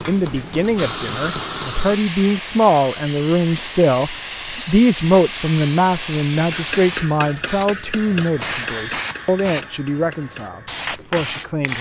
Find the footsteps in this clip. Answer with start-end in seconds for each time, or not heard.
not heard.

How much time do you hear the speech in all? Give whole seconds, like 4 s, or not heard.
12 s.